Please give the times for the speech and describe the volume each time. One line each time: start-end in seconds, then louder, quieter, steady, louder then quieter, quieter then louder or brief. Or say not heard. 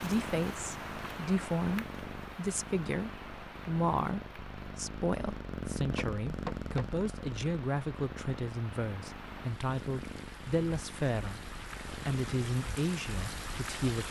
0.0-14.0 steady.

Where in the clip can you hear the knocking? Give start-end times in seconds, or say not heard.
5.9-7.0.